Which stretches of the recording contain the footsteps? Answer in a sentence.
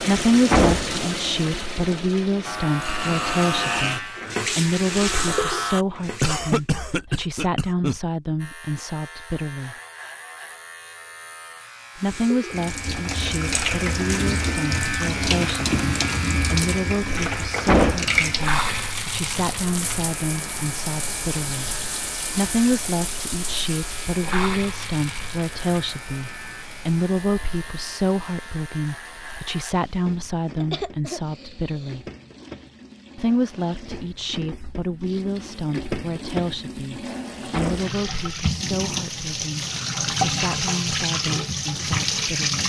You can't hear the footsteps here.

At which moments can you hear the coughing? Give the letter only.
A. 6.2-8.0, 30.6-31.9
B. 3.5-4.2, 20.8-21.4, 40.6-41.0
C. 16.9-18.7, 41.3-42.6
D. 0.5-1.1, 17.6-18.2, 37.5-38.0
A.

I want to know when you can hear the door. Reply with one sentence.
You can hear the door from 0.5 to 1.1 s, from 17.6 to 18.2 s and from 37.5 to 38.0 s.